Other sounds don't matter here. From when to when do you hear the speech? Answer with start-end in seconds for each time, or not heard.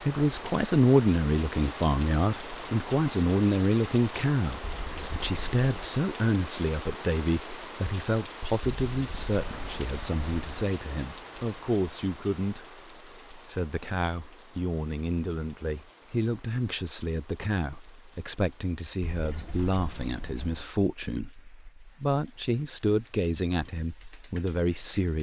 0.1-25.1.